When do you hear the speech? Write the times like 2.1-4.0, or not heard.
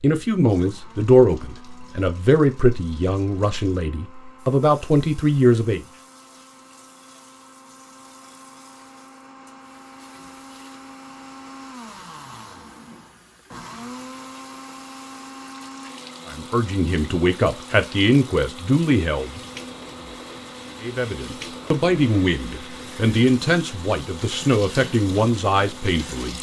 0.0-5.8, 16.2-19.4, 20.8-26.3.